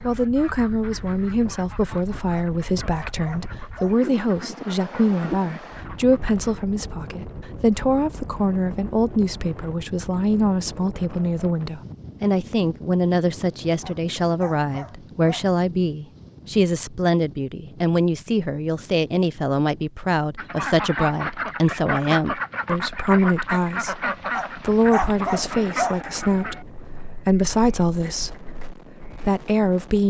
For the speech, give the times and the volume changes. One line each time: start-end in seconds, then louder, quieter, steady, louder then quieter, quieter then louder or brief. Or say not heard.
0.0-30.0 steady.